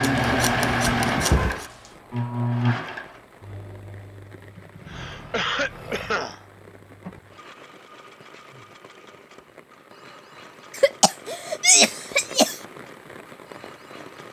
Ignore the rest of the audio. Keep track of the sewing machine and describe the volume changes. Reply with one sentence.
The loudness of the sewing machine goes down.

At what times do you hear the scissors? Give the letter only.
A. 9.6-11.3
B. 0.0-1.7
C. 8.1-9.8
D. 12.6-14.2
B.